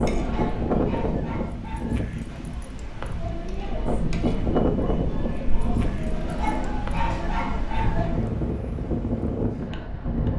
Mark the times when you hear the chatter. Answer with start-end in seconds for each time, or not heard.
0.0-8.2.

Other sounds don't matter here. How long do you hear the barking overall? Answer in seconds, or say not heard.
4 s.